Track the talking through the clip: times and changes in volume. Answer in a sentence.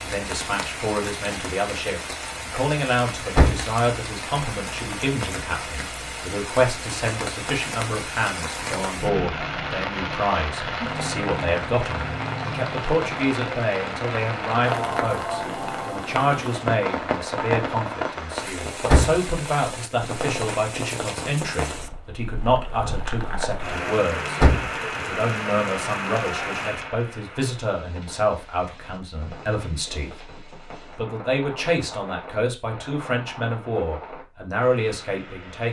You can hear the talking from 0.0 to 35.6 s, at a steady volume.